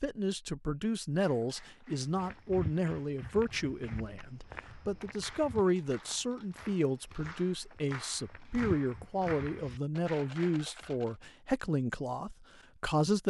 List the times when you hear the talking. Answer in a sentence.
You can hear the talking from 0.0 to 13.2 s.